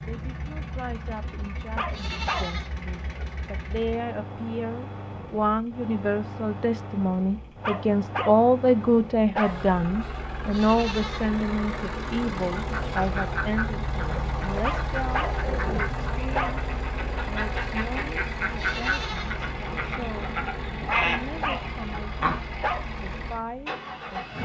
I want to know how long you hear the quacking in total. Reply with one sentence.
You can hear the quacking for 10 seconds altogether.